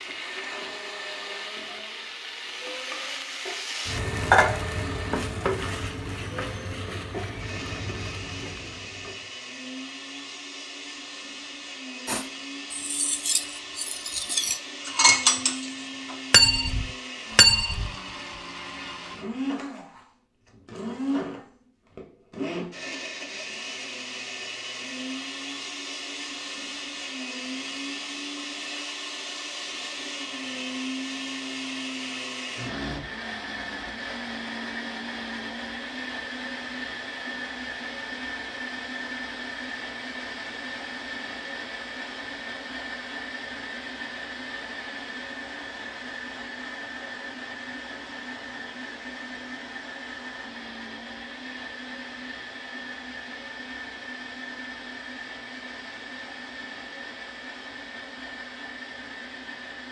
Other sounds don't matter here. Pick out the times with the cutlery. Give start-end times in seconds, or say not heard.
12.1-17.9.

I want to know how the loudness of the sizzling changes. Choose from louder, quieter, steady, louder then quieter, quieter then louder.
louder then quieter.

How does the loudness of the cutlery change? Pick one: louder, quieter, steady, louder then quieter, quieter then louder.
louder.